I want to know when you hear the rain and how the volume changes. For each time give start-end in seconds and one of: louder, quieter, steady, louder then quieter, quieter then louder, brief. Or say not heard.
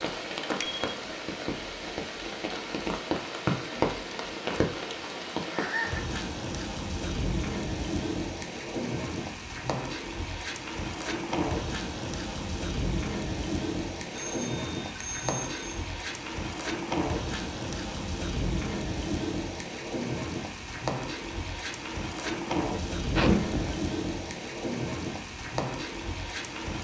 0.0-26.7 steady.